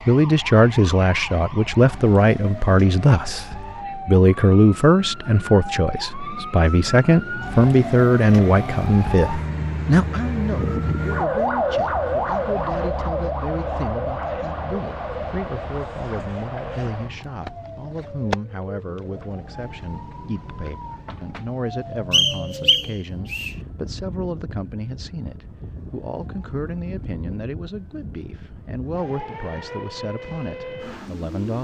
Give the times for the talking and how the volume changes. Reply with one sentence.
The talking can be heard from 0.1 to 31.5 s, getting quieter.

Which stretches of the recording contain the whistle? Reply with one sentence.
You can hear the whistle from 22.1 to 23.6 s.